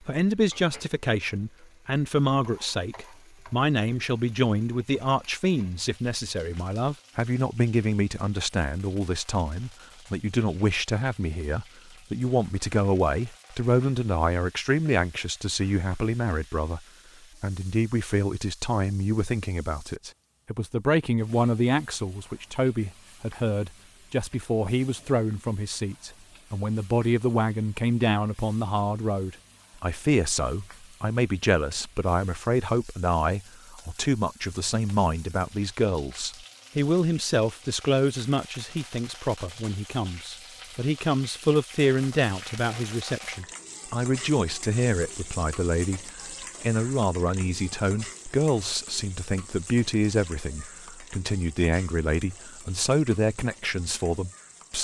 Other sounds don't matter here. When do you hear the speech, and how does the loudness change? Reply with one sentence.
You can hear the speech from 0.1 to 16.8 s, at a steady volume; and from 17.4 to 54.7 s, at a steady volume.